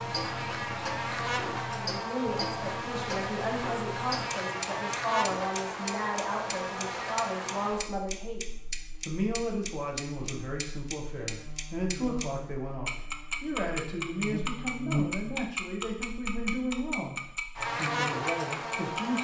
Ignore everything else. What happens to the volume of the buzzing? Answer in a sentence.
The loudness of the buzzing goes down, then up.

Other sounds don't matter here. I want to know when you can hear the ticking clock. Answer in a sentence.
The ticking clock can be heard from 0.0 to 12.2 s and from 12.8 to 19.2 s.